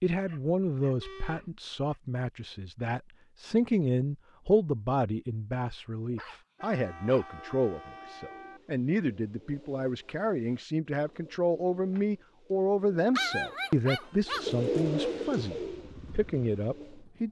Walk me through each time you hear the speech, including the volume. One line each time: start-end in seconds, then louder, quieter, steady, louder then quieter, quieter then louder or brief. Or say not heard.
0.0-17.2 steady.